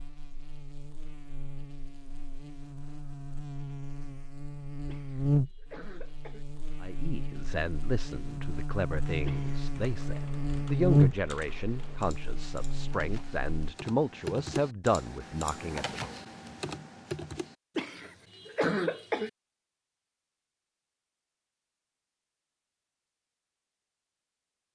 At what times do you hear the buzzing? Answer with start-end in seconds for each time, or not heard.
0.0-13.8.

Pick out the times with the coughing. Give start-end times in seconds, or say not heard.
4.8-6.5, 9.2-9.7, 17.8-19.3.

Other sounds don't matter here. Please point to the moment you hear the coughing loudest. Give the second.
19 s.